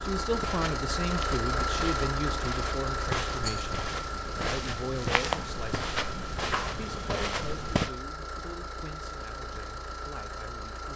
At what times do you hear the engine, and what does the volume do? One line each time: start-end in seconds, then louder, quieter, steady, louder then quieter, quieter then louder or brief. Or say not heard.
0.0-10.9 quieter.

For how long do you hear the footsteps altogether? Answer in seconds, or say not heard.
8 s.